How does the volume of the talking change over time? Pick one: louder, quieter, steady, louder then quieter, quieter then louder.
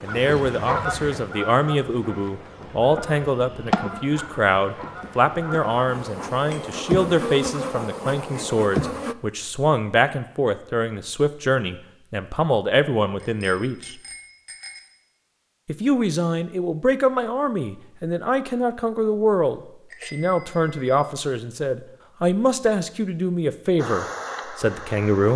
steady.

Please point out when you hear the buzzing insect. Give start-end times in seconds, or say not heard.
0.0-9.2, 23.8-25.3.